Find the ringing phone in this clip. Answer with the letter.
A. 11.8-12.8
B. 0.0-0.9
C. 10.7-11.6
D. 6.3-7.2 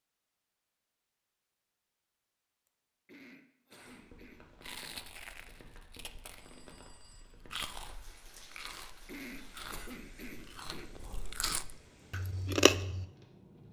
D.